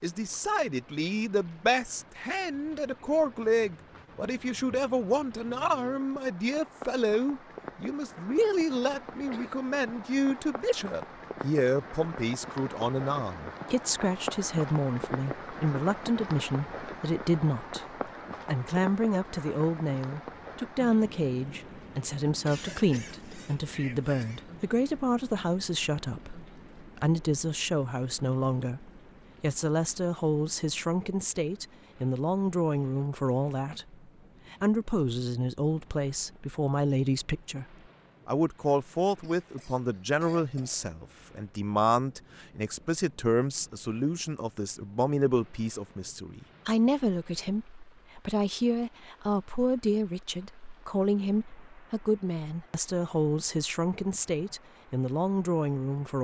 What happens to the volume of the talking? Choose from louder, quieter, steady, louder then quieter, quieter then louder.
steady.